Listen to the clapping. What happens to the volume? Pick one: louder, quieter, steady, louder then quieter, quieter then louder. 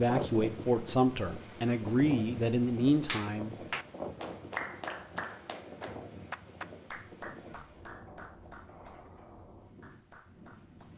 quieter.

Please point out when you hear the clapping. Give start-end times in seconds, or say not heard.
3.0-10.9.